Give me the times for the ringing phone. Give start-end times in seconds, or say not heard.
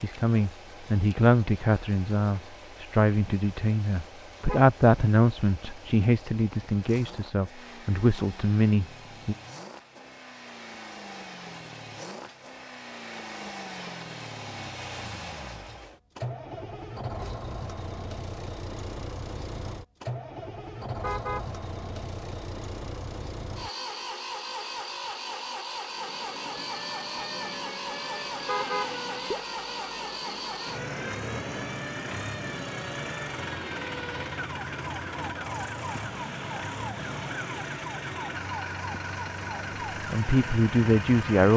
not heard.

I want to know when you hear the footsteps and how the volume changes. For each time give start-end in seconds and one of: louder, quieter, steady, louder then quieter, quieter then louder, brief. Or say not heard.
not heard.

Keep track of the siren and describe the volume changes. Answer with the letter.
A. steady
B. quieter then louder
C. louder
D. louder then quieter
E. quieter
A.